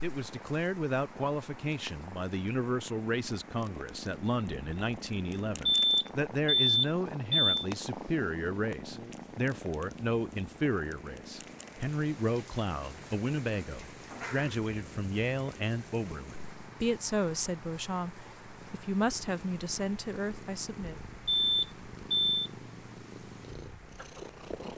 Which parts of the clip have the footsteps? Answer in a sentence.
The footsteps can't be heard in this clip.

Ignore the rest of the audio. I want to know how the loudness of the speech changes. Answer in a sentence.
The volume of the speech stays about the same.